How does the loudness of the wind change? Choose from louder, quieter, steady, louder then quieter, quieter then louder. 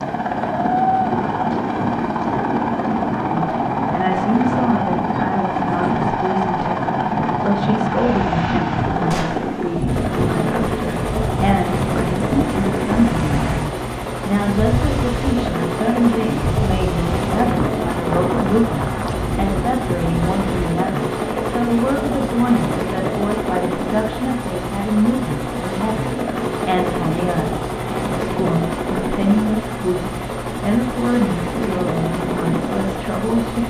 steady.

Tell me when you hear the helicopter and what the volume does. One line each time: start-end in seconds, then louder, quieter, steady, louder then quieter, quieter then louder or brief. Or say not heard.
0.0-33.6 steady.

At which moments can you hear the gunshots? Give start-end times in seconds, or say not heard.
9.1-9.5.